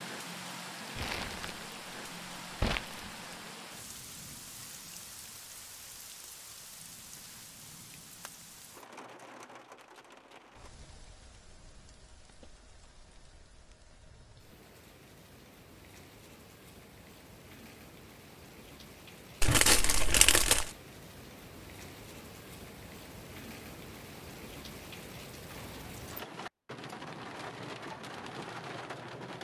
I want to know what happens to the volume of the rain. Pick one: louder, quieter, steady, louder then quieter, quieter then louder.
quieter then louder.